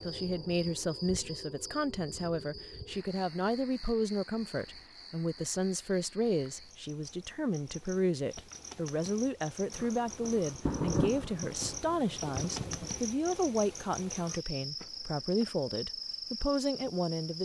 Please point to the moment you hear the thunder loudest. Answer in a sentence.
The volume of the thunder peaks at 11 seconds.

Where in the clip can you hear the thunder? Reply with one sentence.
The thunder can be heard from 9.8 to 13.0 s.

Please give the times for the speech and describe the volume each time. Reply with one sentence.
The speech can be heard from 0.0 to 17.4 s, at a steady volume.